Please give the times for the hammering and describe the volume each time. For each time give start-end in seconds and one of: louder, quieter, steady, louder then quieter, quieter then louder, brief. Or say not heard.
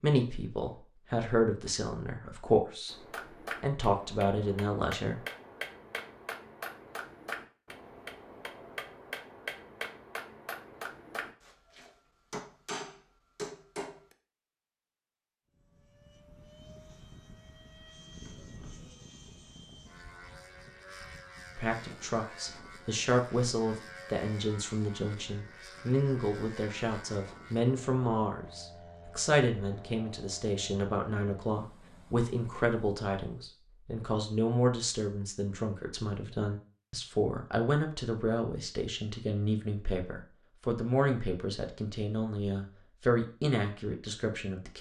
2.9-14.2 steady.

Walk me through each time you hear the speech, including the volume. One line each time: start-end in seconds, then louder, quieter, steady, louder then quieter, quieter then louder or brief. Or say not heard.
0.0-3.0 brief
3.6-5.2 brief
21.6-44.7 steady.